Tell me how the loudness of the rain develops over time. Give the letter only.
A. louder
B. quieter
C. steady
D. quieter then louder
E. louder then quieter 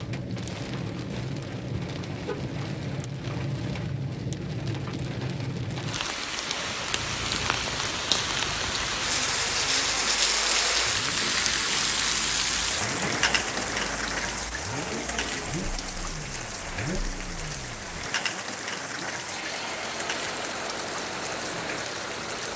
E.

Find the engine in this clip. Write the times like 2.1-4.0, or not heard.
6.7-22.5.